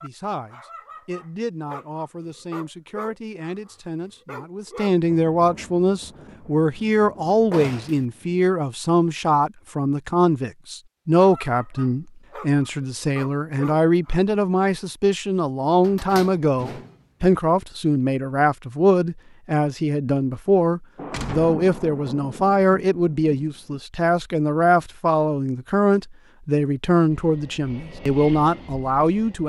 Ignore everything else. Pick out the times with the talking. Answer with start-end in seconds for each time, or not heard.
0.0-29.4.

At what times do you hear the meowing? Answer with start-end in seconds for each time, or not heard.
not heard.